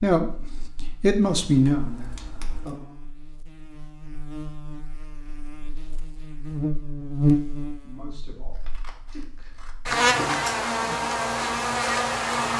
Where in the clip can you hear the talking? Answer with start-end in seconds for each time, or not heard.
0.0-3.0, 7.8-11.1.